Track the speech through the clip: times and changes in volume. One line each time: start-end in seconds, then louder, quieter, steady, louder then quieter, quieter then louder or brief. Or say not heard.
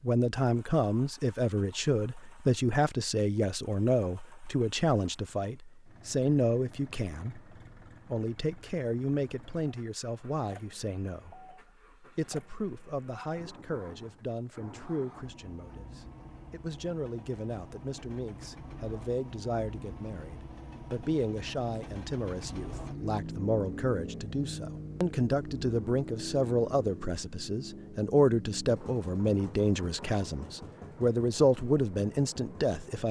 0.0-33.0 quieter then louder.